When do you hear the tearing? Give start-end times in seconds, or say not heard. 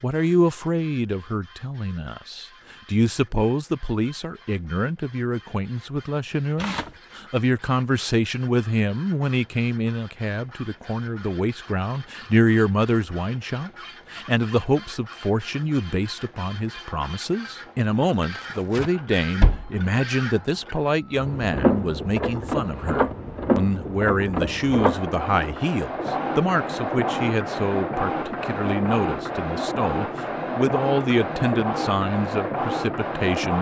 6.5-7.0, 18.3-18.9.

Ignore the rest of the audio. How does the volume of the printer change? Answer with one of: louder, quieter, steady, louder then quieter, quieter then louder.
louder.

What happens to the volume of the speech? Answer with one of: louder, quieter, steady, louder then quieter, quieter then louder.
steady.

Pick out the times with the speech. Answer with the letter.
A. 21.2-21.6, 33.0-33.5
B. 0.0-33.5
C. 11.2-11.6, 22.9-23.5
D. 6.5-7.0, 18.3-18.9
B.